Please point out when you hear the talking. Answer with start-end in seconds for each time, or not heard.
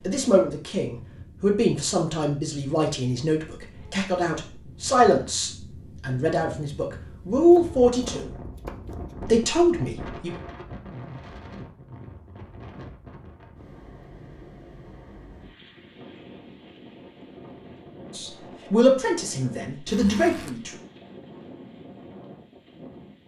0.0-8.2, 9.2-10.3, 18.1-20.8.